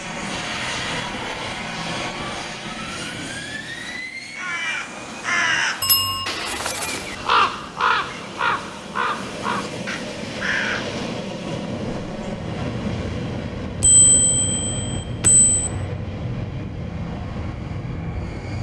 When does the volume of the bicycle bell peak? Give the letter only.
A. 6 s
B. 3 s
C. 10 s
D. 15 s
A.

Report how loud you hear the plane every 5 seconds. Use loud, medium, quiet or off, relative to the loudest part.
loud, medium, loud, loud.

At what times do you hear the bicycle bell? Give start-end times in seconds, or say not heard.
5.8-6.2, 13.8-15.7.